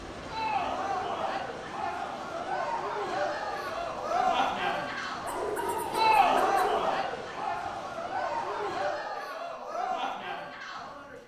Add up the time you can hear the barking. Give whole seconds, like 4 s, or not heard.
2 s.